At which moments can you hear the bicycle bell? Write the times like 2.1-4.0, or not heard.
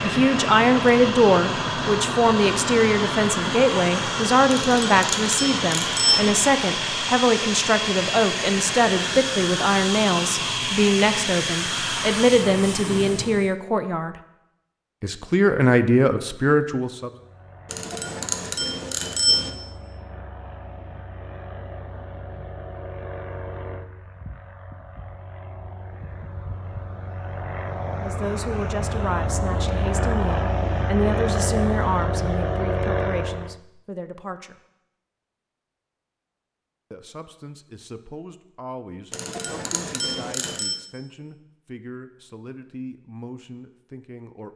4.6-6.3, 17.7-19.5, 39.1-40.8.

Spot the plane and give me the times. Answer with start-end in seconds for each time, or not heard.
0.0-13.6, 17.0-33.6.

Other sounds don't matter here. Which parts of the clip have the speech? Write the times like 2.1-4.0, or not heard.
0.0-14.2, 15.0-17.1, 28.0-34.5, 36.9-44.5.